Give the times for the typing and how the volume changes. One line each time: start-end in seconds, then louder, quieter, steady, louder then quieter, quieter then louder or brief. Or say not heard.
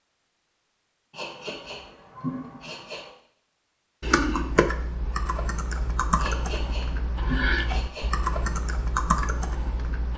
4.0-10.1 steady.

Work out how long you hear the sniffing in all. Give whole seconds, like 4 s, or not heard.
4 s.